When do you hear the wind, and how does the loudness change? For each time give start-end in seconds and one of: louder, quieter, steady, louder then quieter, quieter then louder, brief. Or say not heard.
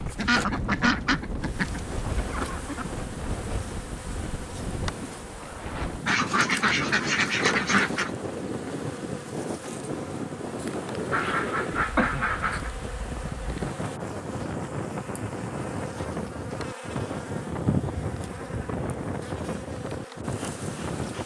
0.0-21.2 steady.